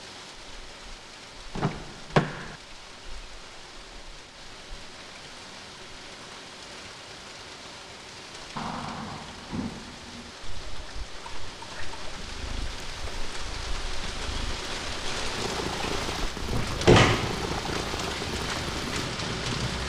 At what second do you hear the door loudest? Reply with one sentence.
The volume of the door peaks at 17 seconds.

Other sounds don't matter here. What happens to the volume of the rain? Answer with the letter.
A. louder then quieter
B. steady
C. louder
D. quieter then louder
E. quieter
C.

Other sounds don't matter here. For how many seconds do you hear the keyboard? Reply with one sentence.
You can hear the keyboard for 2 seconds altogether.